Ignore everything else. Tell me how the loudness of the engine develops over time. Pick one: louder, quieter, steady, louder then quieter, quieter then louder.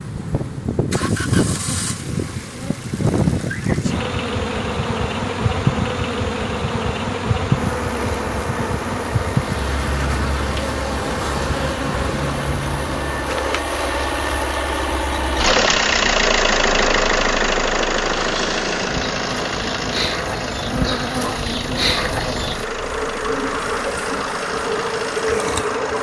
louder then quieter.